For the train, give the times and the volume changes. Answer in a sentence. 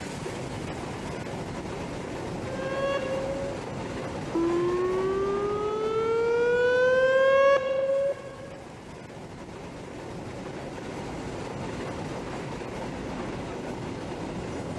The train can be heard from 0.0 to 14.7 s, getting quieter then louder.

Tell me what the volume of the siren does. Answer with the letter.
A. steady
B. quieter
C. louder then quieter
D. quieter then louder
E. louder
E.